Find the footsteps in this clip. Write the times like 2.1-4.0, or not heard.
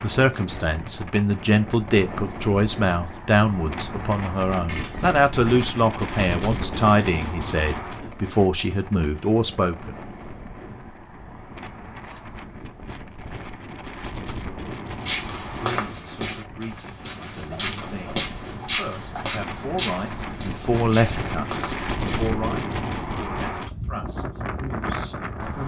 15.0-22.3.